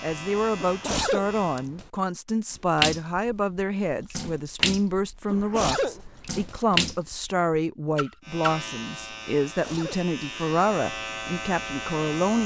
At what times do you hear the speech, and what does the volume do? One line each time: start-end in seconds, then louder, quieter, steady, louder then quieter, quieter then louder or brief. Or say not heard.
0.0-12.4 steady.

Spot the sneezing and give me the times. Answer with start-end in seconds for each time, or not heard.
0.6-1.9, 5.3-6.6, 9.4-10.0.